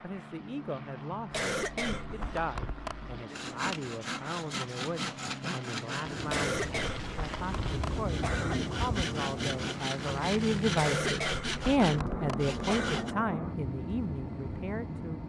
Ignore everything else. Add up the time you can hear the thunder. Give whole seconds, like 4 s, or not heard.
5 s.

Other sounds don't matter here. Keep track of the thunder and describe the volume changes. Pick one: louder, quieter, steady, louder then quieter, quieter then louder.
louder then quieter.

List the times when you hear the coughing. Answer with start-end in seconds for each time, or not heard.
1.3-3.1, 6.2-8.7, 10.8-13.2.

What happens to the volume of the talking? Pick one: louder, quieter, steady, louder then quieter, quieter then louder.
louder then quieter.